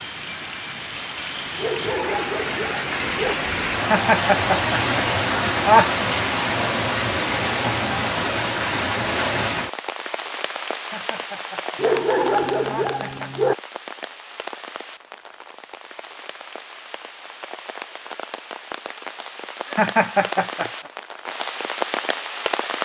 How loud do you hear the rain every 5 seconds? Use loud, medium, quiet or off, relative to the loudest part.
loud, loud, medium, quiet, medium.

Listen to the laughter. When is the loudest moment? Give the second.
6 s.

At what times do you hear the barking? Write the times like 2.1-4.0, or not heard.
1.6-3.4, 11.8-13.6.